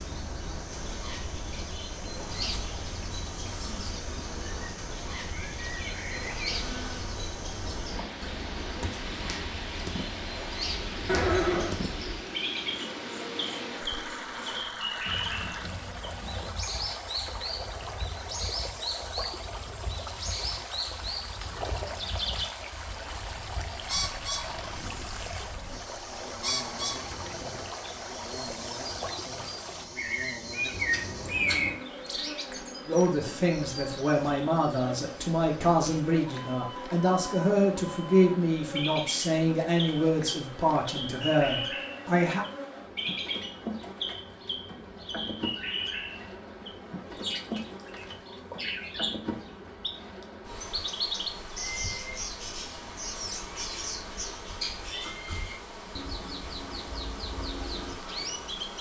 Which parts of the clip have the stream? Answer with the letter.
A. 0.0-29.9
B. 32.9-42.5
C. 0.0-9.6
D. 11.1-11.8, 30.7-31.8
A.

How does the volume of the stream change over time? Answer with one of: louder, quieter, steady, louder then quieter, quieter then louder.
steady.